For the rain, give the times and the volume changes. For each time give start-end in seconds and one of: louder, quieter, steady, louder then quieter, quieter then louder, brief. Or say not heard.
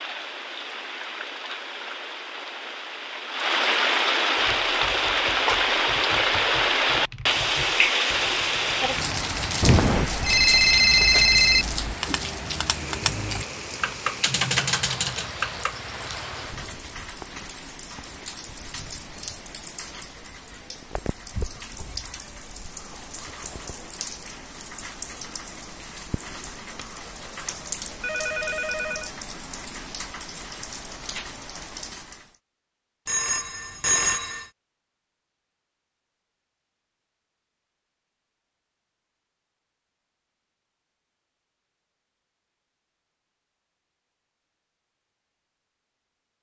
0.0-32.4 quieter.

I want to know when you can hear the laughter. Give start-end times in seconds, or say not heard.
not heard.